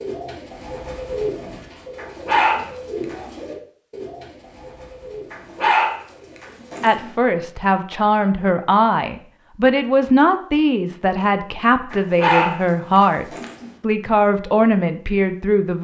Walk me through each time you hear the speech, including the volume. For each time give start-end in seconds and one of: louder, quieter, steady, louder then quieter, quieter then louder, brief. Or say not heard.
6.8-15.7 steady.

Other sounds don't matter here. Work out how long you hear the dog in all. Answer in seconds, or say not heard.
5 s.